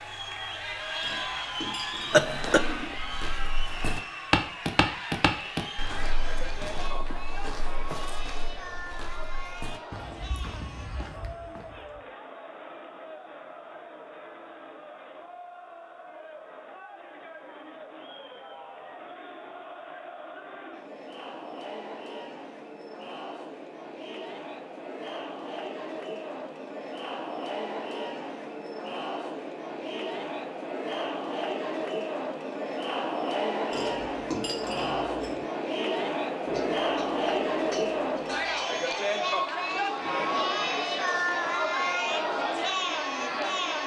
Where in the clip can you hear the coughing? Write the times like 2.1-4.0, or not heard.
2.1-3.0, 36.5-38.6.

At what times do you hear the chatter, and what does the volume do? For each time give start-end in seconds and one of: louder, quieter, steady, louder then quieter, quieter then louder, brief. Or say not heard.
0.0-43.8 quieter then louder.